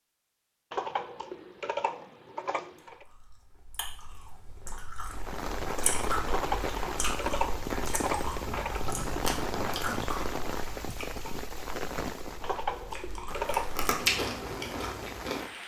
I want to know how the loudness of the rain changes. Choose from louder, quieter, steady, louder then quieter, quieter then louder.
quieter.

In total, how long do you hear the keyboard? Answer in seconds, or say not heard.
6 s.